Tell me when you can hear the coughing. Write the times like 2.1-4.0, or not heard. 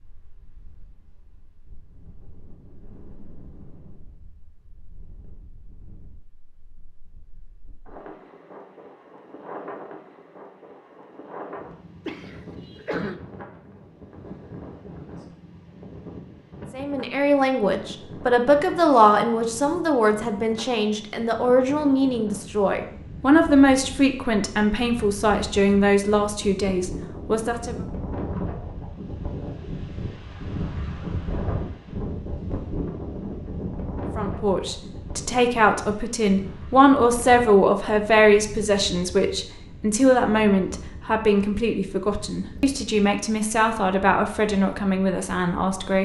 12.1-13.2.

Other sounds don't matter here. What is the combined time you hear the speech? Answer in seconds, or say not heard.
23 s.